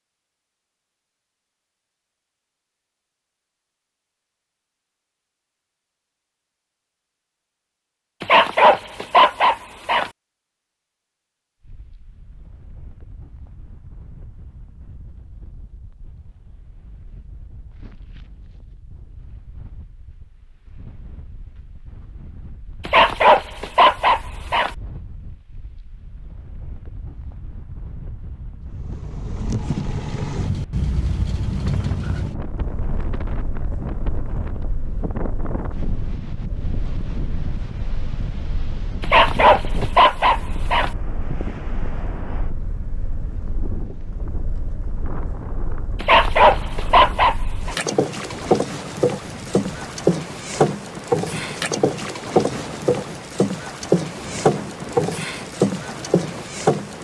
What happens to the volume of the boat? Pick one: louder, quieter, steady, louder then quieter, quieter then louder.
quieter then louder.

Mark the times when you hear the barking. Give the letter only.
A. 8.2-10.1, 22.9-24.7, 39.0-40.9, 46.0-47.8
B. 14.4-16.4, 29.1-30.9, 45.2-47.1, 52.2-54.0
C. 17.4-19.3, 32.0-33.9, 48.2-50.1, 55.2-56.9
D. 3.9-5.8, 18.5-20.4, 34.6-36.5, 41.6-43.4
A.